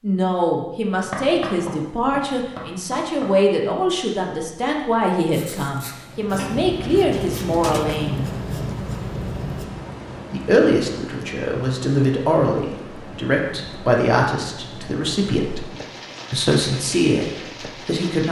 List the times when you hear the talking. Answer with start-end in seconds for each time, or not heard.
0.0-8.2, 10.3-15.7, 16.3-18.2.